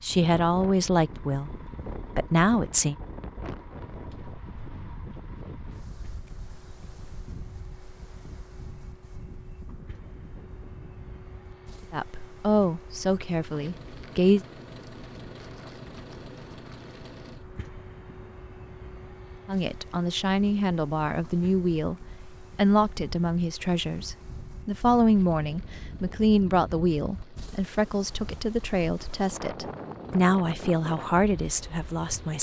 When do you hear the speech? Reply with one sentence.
You can hear the speech from 0.0 to 1.5 s, from 2.1 to 3.0 s, from 11.9 to 14.4 s, from 19.4 to 21.9 s and from 22.6 to 32.3 s.